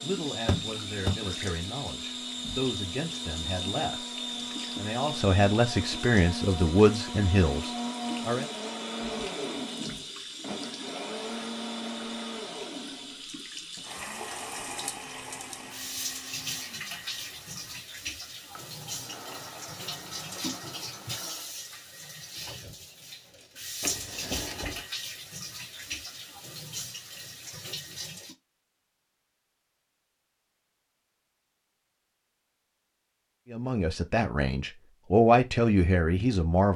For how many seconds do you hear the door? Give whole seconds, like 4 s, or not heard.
2 s.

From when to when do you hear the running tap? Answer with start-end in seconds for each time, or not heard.
0.0-28.4.